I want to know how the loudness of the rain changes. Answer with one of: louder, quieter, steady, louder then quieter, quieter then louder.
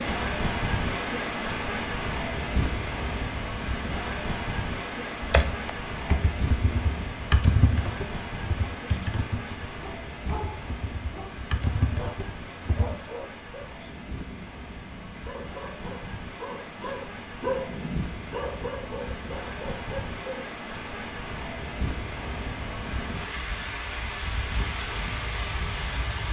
quieter then louder.